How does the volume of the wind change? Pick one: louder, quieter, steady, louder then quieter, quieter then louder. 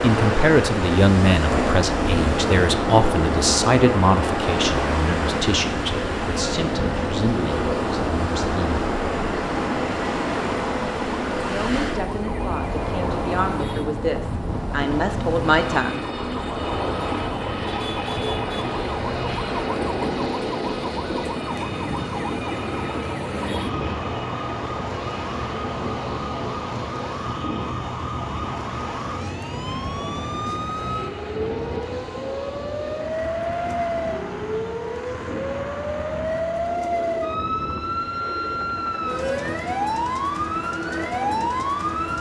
quieter.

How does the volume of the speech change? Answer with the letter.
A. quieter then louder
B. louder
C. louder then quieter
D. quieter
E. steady
A.